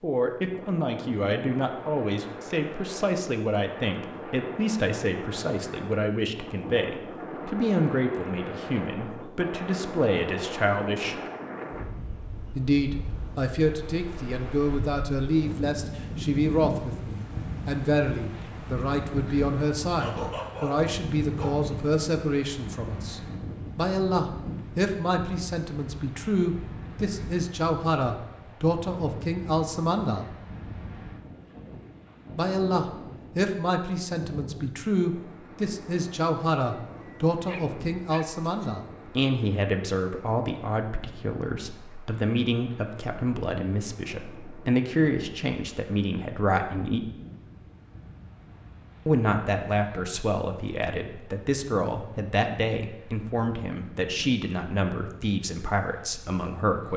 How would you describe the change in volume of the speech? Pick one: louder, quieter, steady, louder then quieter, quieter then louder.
steady.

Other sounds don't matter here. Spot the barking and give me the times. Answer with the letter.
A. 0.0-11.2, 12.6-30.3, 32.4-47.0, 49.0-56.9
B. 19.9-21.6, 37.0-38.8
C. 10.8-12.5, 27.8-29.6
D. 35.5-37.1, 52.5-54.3
B.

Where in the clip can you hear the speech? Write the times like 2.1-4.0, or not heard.
0.0-11.2, 12.6-30.3, 32.4-47.0, 49.0-56.9.